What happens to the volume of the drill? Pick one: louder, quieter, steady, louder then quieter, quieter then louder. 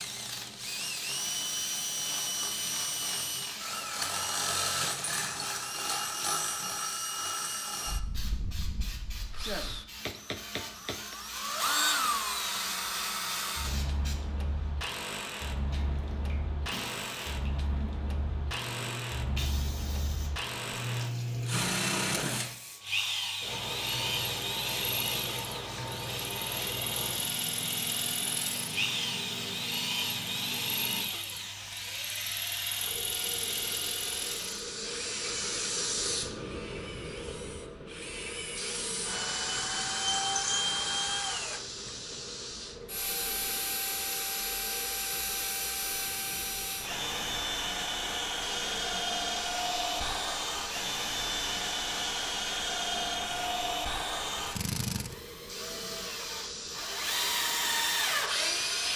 steady.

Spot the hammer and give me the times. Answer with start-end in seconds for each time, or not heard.
9.4-11.2.